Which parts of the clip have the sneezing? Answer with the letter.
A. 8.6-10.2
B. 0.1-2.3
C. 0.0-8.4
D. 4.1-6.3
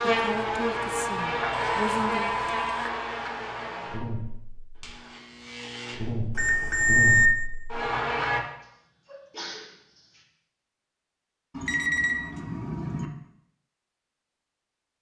A.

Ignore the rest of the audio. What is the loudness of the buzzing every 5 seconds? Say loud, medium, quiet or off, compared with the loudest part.
loud, loud, off.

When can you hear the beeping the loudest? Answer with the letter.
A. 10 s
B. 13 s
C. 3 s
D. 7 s
D.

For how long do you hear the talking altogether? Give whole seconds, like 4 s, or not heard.
2 s.